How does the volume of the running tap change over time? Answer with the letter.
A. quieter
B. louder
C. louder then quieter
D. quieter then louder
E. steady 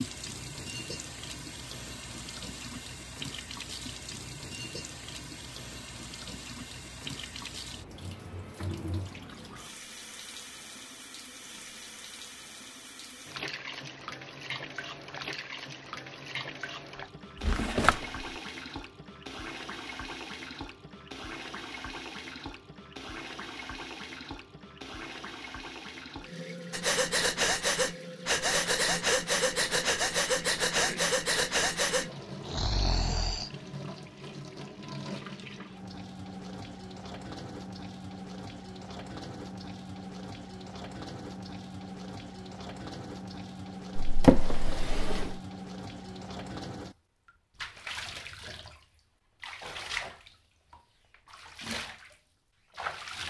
E.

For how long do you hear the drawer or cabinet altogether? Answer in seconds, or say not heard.
2 s.